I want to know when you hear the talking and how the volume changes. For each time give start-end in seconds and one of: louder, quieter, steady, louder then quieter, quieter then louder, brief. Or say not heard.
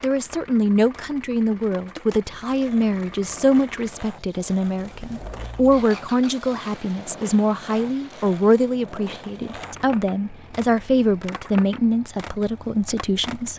0.0-13.5 steady.